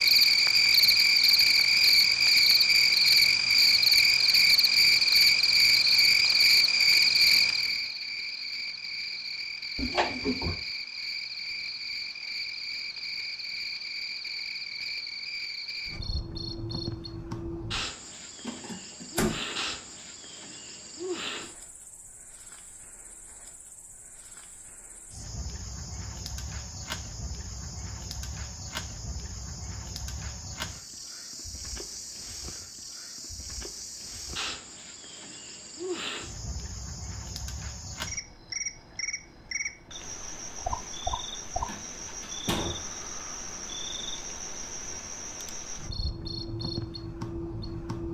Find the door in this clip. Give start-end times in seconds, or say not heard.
9.8-10.6, 18.4-19.4, 41.6-42.9.